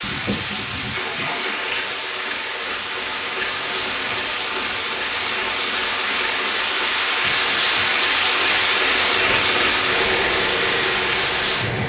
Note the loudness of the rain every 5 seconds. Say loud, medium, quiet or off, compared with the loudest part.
medium, loud, loud.